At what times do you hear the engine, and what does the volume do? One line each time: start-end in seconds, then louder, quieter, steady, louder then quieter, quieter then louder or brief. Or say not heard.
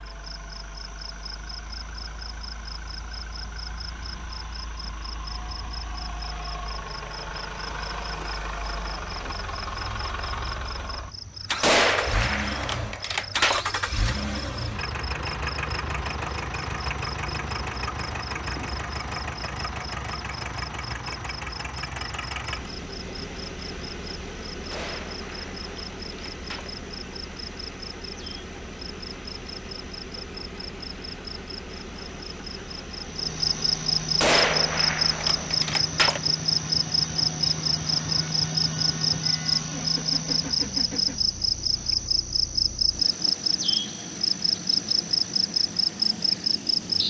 0.0-47.0 louder then quieter.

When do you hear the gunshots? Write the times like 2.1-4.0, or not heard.
11.6-13.7, 24.7-26.7, 34.2-36.2.